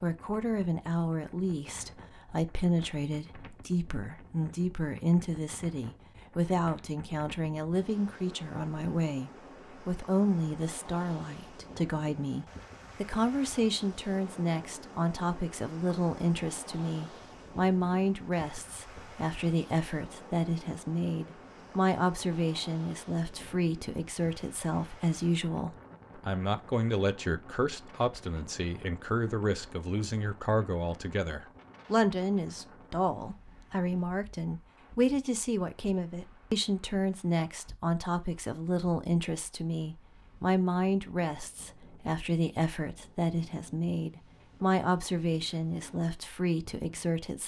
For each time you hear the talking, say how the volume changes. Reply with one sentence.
The talking can be heard from 0.0 to 47.4 s, at a steady volume.